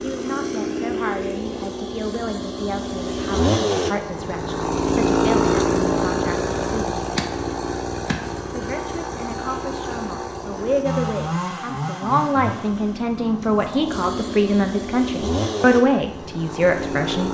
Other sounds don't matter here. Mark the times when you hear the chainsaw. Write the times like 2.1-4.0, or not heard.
0.0-17.2.